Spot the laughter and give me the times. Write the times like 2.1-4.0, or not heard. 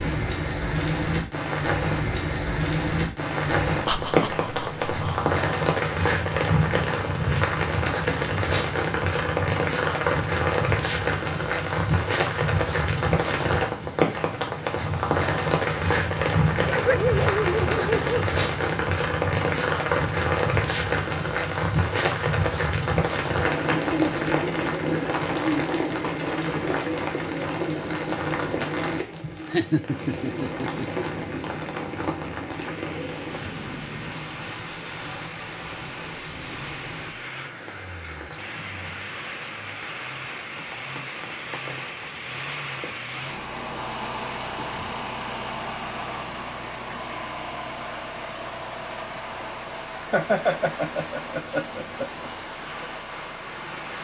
3.9-5.2, 29.5-31.8, 50.1-52.4.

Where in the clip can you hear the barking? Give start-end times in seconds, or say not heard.
16.6-18.2.